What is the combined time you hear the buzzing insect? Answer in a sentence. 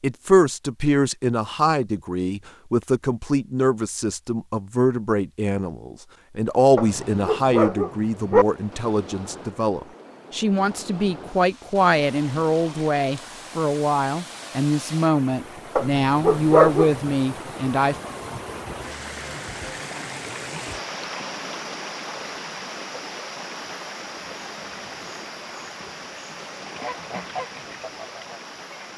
You can't hear the buzzing insect here.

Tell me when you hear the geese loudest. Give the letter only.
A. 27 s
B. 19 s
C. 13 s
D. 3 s
A.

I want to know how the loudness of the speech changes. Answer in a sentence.
The volume of the speech stays about the same.